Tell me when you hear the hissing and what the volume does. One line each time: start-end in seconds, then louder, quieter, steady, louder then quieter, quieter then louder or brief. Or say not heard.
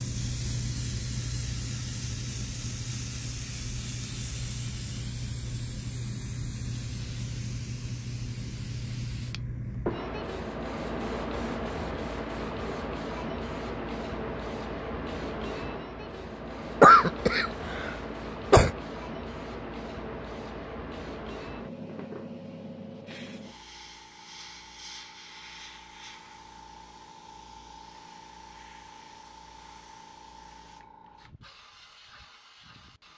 0.0-33.1 quieter.